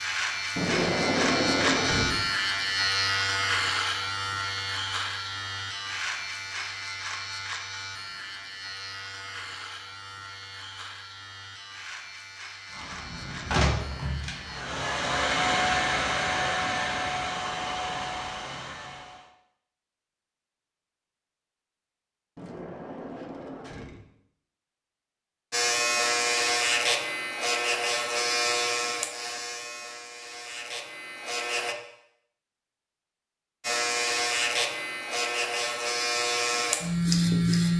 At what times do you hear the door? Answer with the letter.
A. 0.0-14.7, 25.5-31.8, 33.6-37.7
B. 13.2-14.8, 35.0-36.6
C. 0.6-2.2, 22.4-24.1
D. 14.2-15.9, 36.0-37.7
C.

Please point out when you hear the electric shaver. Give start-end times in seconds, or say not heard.
0.0-14.7, 25.5-31.8, 33.6-37.7.